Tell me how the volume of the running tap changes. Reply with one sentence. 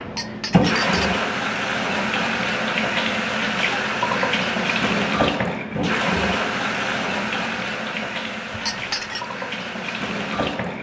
The loudness of the running tap goes down.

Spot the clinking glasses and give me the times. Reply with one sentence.
The clinking glasses can be heard from 0.1 to 1.1 s and from 8.5 to 9.2 s.